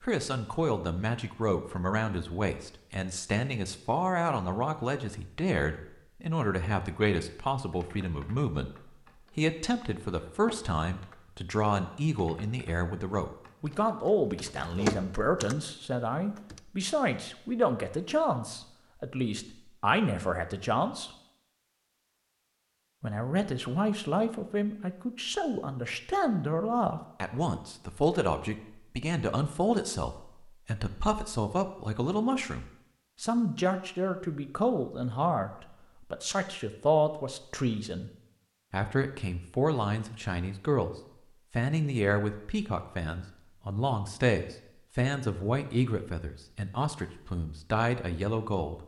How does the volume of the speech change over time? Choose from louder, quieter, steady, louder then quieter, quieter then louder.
steady.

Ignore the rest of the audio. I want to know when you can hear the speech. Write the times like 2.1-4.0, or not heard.
0.0-21.1, 23.0-38.1, 38.7-48.8.